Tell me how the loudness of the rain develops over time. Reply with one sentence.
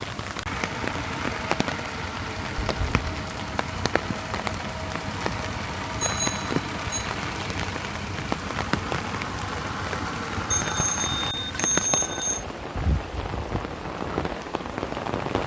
The volume of the rain stays about the same.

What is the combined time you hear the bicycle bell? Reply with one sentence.
You can hear the bicycle bell for 4 seconds altogether.